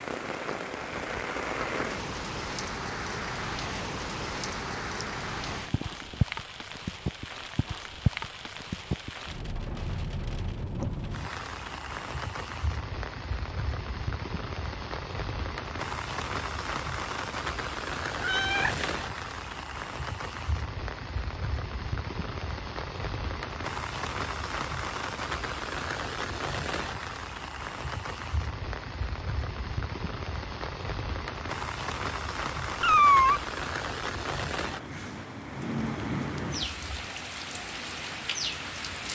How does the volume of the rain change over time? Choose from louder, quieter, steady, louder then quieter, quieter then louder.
steady.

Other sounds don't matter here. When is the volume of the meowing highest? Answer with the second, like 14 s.
33 s.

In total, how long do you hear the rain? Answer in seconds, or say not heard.
39 s.